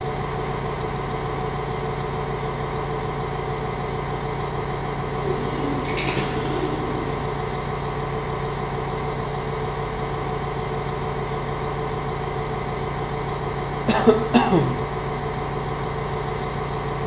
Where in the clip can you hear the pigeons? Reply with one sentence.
The pigeons can be heard from 5.2 to 7.2 s.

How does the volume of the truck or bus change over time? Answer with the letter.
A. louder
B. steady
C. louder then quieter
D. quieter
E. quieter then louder
B.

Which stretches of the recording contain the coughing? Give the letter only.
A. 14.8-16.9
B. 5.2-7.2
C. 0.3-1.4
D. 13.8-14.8
D.